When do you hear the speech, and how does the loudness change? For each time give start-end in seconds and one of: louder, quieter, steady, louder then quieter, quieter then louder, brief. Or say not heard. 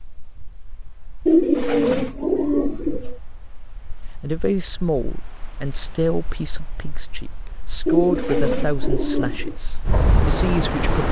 4.2-11.0 steady.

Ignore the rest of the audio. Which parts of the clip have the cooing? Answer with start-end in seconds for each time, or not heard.
1.2-3.1, 7.8-9.6.